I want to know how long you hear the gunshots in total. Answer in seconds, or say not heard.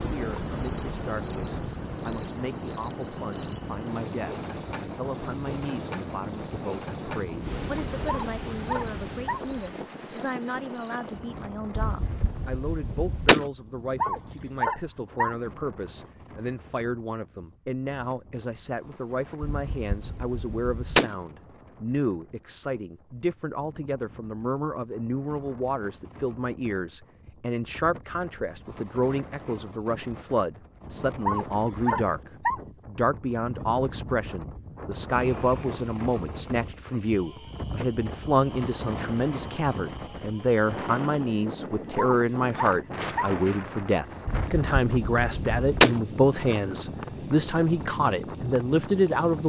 5 s.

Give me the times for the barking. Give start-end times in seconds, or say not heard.
8.1-9.4, 13.9-15.3, 31.2-32.6, 42.0-43.4.